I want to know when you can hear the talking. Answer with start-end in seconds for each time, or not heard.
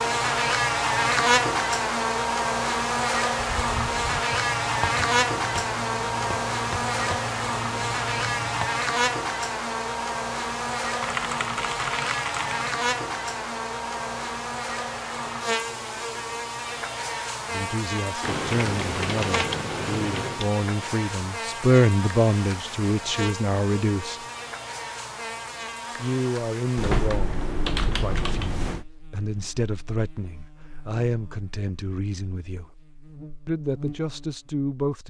17.5-24.2, 25.9-32.8, 33.5-35.0.